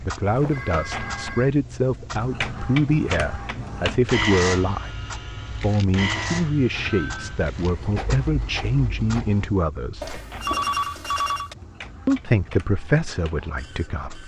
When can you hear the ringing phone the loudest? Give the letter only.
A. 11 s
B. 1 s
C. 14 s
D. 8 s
A.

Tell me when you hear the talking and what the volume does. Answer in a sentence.
The talking can be heard from 0.0 to 10.2 s, at a steady volume; and briefly from 12.1 to 14.2 s.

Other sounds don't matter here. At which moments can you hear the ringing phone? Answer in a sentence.
The ringing phone can be heard from 0.2 to 1.6 s, from 6.7 to 7.4 s and from 10.0 to 11.6 s.